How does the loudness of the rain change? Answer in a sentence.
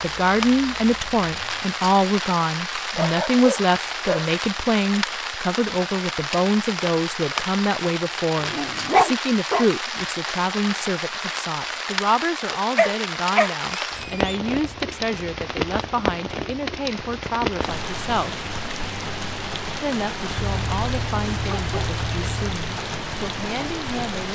The loudness of the rain stays about the same.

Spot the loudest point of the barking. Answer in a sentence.
The loudest moment of the barking is at 9 seconds.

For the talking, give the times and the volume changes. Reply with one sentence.
You can hear the talking from 0.0 to 18.4 s, getting quieter; and from 19.8 to 24.3 s, getting quieter then louder.